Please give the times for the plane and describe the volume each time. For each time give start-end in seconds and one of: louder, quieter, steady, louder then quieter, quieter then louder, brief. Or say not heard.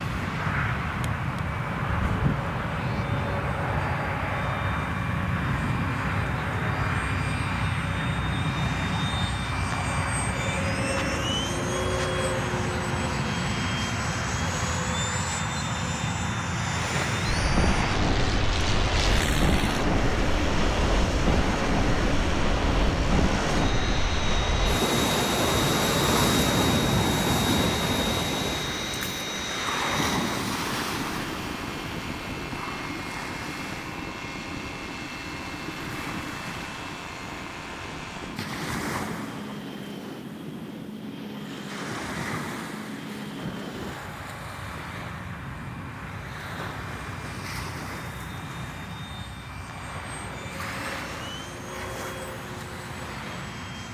0.0-53.8 quieter.